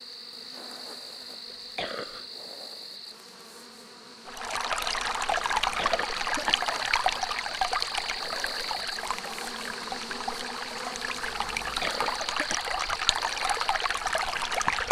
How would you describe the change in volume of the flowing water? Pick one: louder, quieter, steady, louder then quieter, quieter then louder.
quieter then louder.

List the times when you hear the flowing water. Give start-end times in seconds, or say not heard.
4.2-14.8.